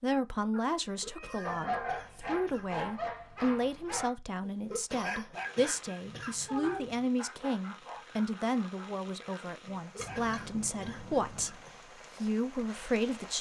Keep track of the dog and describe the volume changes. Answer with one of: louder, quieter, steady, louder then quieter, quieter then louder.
quieter.